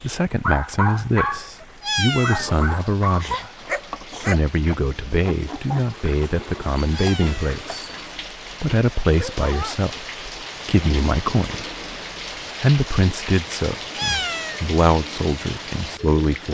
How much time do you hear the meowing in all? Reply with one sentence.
The meowing can be heard for 3 seconds in total.